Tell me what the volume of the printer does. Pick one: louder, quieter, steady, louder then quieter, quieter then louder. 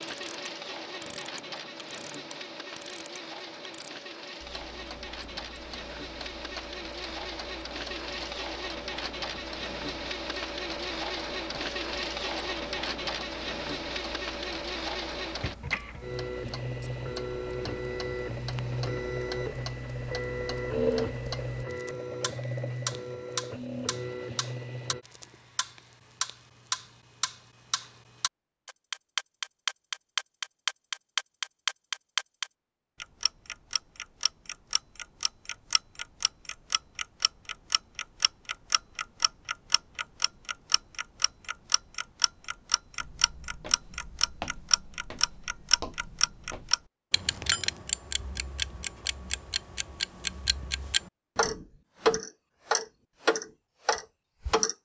louder.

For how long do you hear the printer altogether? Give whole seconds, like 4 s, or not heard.
25 s.